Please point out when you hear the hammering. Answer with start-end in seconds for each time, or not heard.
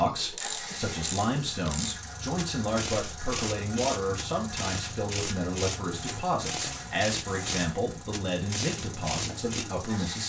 not heard.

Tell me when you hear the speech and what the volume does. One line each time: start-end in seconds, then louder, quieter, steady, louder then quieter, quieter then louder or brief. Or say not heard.
0.0-10.2 steady.